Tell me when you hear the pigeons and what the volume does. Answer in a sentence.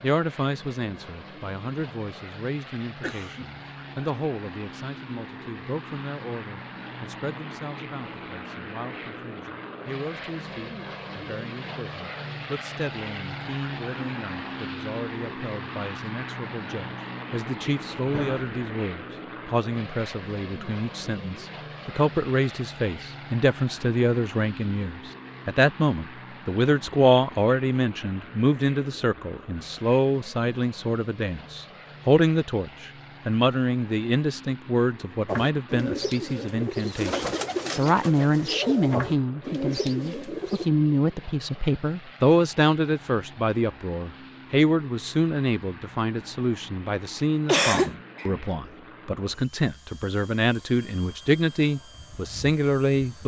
The pigeons can be heard from 35.2 to 40.6 s, at a steady volume.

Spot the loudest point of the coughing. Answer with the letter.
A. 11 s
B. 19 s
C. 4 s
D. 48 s
D.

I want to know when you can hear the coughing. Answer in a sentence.
You can hear the coughing from 3.0 to 3.5 s, from 18.1 to 18.5 s and from 47.5 to 48.4 s.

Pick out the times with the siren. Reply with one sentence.
You can't hear the siren here.